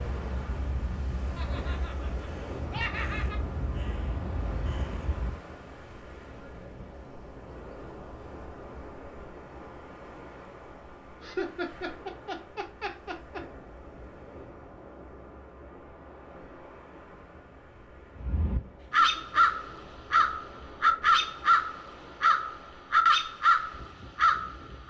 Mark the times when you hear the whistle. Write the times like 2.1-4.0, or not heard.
not heard.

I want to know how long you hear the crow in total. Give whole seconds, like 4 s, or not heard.
12 s.